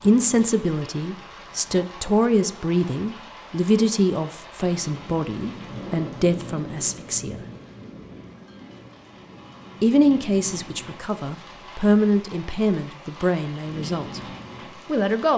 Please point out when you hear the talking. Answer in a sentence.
You can hear the talking from 0.0 to 7.3 s, from 9.8 to 14.2 s and from 14.8 to 15.3 s.